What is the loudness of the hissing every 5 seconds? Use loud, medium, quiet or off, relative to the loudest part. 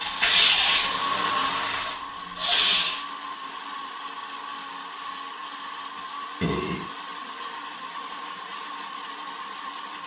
loud, off.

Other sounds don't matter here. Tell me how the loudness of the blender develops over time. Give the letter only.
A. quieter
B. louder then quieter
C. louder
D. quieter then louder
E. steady
A.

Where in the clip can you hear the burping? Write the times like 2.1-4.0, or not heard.
0.8-2.0, 6.0-6.9.